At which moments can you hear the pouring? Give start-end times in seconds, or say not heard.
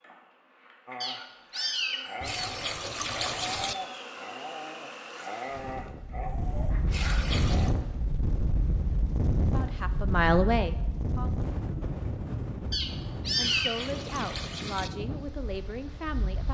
2.2-3.8, 6.8-7.8, 13.3-14.9.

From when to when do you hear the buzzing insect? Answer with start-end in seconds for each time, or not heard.
0.0-5.9.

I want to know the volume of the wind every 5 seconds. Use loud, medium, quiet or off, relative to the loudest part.
off, loud, loud, medium.